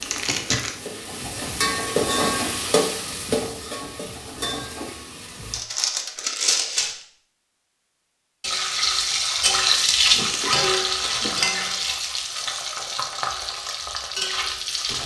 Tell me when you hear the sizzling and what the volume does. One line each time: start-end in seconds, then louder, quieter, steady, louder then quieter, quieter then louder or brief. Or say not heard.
0.0-5.6 louder then quieter
8.4-15.0 quieter.